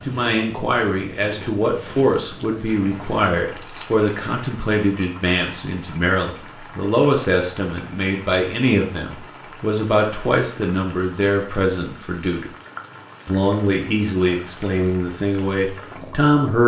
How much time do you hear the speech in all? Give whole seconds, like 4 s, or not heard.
16 s.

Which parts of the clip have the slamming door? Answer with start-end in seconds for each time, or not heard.
not heard.